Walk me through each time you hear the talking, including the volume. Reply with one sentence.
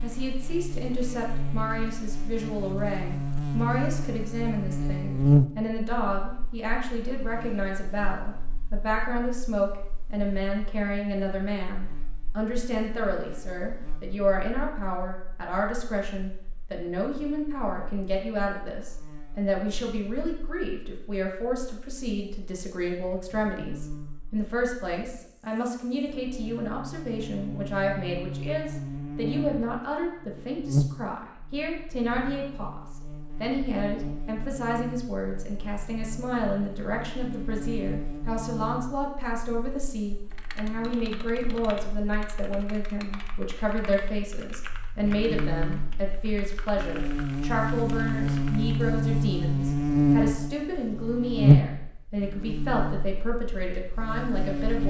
The talking can be heard from 0.0 to 54.8 s, at a steady volume.